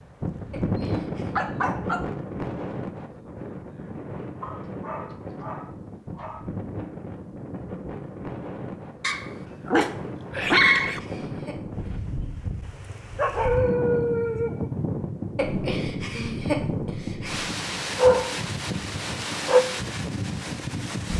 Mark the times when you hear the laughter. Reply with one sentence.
The laughter can be heard from 0.5 to 1.4 s, from 10.3 to 12.1 s and from 15.3 to 17.5 s.